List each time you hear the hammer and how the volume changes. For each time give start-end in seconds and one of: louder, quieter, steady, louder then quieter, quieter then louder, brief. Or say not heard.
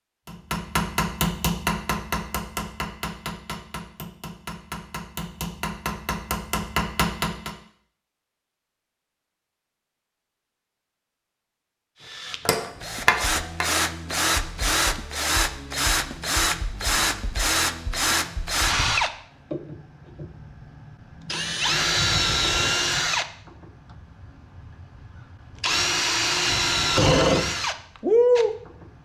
0.2-7.5 quieter then louder
12.4-13.8 brief.